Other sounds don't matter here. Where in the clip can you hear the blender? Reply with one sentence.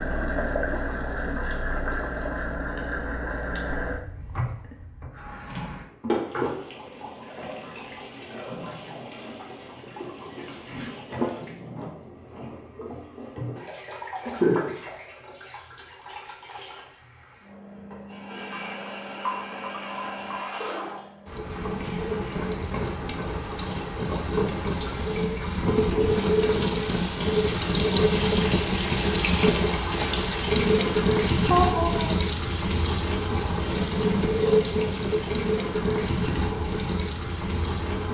The blender can't be heard in this clip.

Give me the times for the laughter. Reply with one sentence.
You can hear the laughter from 14.2 to 14.8 s and from 31.4 to 32.1 s.